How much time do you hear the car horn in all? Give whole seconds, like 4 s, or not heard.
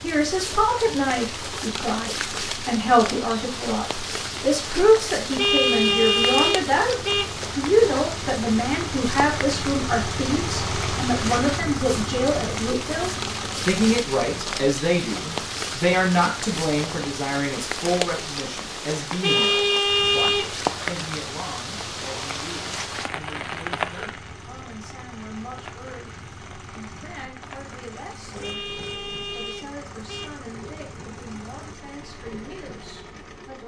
5 s.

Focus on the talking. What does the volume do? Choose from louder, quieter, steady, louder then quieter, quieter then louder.
quieter.